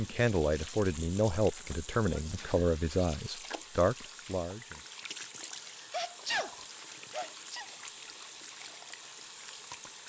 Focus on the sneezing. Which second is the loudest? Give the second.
6 s.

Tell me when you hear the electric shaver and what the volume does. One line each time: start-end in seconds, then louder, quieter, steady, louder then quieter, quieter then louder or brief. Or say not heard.
not heard.